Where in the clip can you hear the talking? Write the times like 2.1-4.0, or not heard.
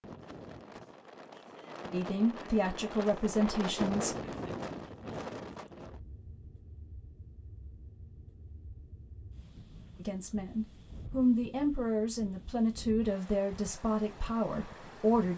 1.9-4.2, 9.9-15.3.